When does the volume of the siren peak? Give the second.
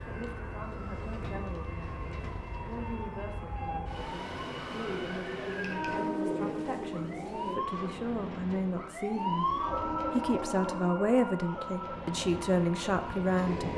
10 s.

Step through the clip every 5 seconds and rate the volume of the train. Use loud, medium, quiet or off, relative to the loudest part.
medium, loud, loud.